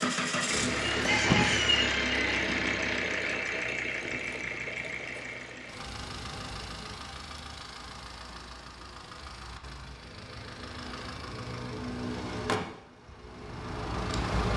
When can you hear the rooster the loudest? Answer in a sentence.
The loudest moment of the rooster is at 1 second.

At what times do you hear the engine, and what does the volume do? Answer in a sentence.
You can hear the engine from 0.0 to 14.5 s, getting quieter then louder.